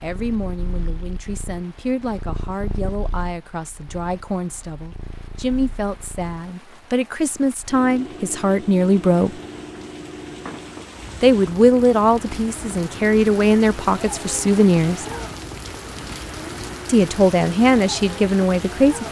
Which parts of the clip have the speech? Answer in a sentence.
You can hear the speech from 0.0 to 9.3 s, from 11.2 to 15.1 s and from 16.9 to 19.0 s.